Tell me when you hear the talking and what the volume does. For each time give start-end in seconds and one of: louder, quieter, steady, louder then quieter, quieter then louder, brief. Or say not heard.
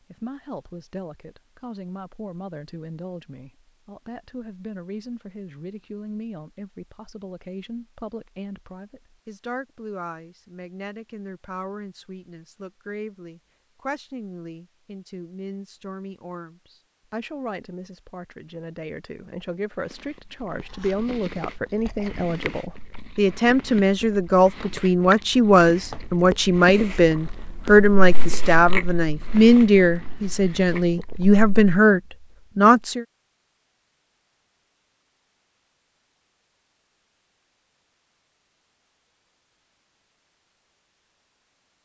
0.1-33.0 louder.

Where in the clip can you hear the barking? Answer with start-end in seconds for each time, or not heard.
not heard.